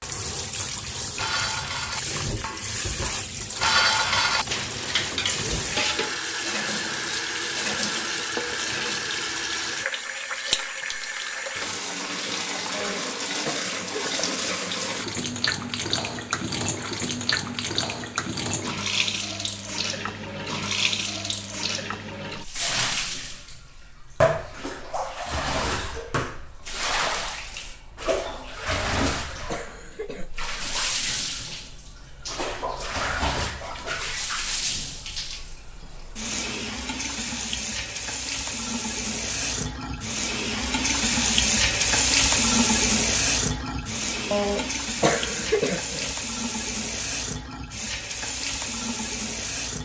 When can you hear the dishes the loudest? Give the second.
4 s.